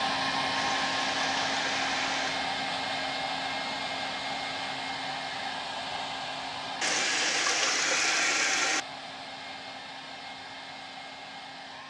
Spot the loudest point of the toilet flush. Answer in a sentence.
The volume of the toilet flush peaks at 8 seconds.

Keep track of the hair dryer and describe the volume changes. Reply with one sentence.
The loudness of the hair dryer goes down.